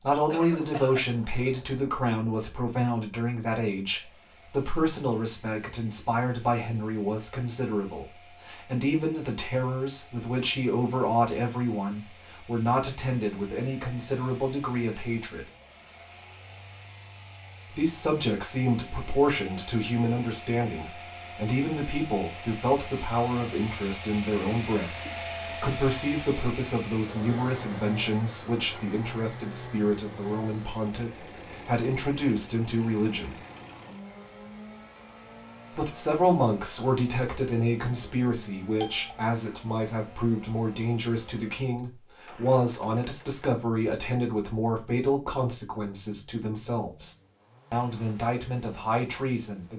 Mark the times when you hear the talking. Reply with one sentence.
The talking can be heard from 0.0 to 15.4 s, from 17.7 to 33.4 s, from 35.7 to 47.1 s and from 47.7 to 49.7 s.